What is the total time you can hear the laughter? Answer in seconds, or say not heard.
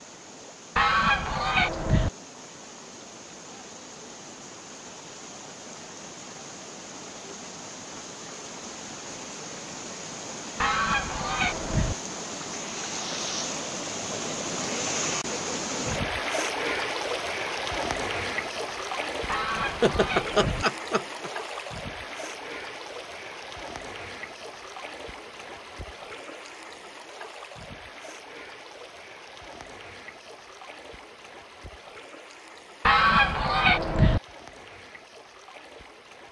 2 s.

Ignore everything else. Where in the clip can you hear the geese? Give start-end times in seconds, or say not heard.
0.8-2.1, 10.6-11.9, 19.2-20.6, 32.9-34.2.